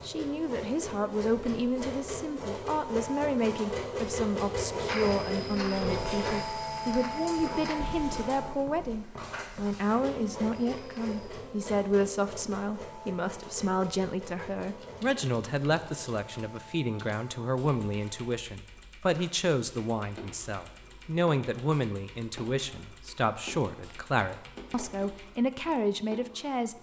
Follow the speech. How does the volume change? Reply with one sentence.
The volume of the speech stays about the same.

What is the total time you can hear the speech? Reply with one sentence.
The speech can be heard for 27 seconds in total.